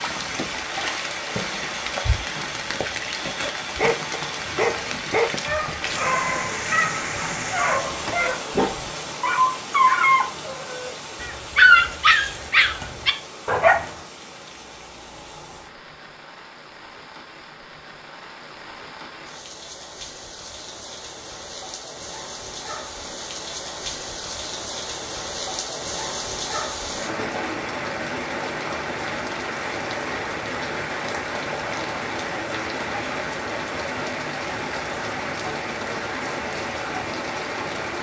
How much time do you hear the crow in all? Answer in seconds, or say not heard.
not heard.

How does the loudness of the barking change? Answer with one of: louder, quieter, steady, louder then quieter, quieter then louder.
louder.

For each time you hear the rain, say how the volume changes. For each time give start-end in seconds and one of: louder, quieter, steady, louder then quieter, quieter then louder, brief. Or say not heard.
0.0-37.9 quieter then louder.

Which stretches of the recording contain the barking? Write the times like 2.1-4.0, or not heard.
3.7-13.8.